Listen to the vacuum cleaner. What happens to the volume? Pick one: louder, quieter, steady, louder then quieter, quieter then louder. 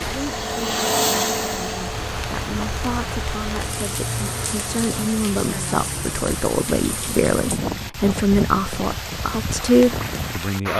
quieter.